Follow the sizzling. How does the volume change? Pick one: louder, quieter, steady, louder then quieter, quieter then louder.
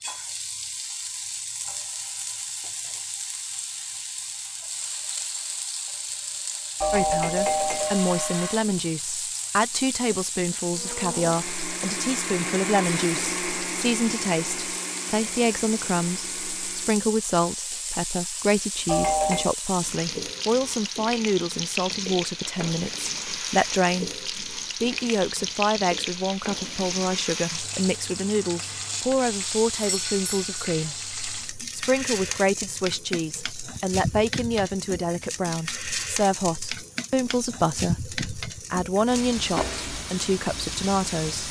steady.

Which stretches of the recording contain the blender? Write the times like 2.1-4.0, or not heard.
10.7-17.1.